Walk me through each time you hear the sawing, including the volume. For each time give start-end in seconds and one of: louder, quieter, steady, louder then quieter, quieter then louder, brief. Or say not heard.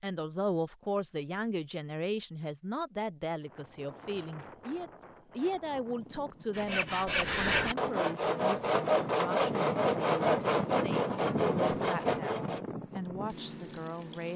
6.5-12.6 steady.